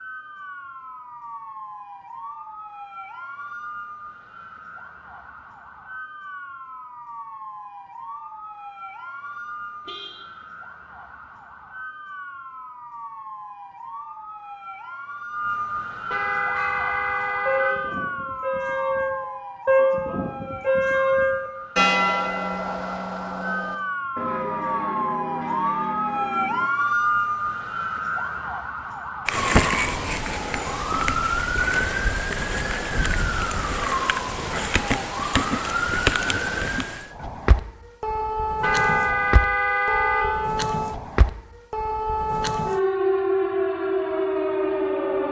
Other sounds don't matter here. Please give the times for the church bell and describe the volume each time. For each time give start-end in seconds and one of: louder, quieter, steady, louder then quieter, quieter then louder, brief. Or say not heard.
16.4-26.7 louder then quieter.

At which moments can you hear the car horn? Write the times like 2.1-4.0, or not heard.
9.8-10.2, 16.1-17.9, 38.6-40.5.